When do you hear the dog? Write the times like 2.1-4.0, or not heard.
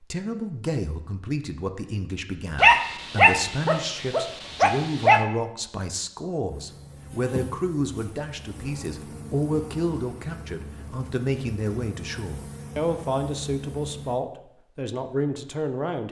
2.5-5.2.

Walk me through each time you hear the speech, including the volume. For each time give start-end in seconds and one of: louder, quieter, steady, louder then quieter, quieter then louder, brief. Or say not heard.
0.0-16.0 steady.